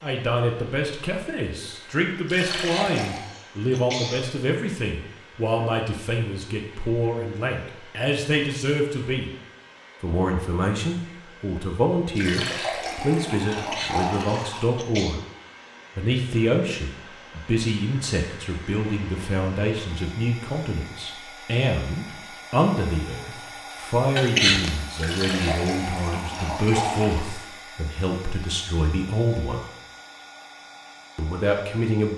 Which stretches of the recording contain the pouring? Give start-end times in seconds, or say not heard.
2.2-3.2, 12.2-14.7, 24.9-27.3.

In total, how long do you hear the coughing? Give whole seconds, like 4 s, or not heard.
4 s.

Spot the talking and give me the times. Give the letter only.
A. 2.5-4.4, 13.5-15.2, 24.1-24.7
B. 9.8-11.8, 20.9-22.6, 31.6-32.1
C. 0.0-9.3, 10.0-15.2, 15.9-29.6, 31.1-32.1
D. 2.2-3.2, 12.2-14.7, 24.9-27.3
C.